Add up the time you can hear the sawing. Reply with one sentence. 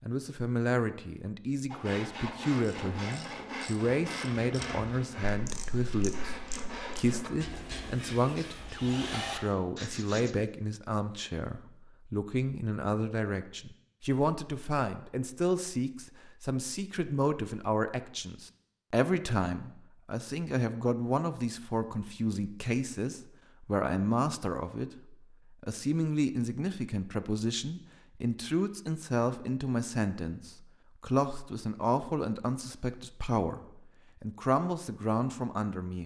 The sawing can be heard for 9 seconds in total.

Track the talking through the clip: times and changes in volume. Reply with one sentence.
You can hear the talking from 0.0 to 36.0 s, at a steady volume.